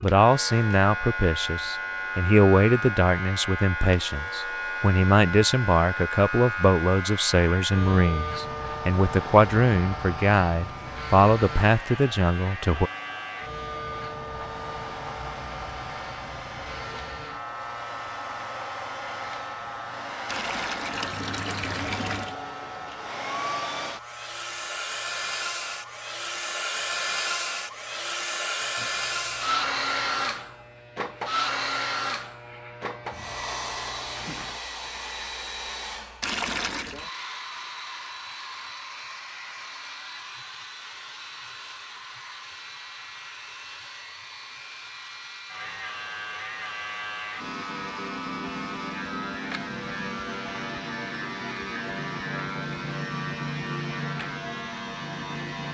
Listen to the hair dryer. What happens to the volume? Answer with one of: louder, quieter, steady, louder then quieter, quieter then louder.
louder then quieter.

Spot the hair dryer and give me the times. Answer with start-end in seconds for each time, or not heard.
0.0-55.6.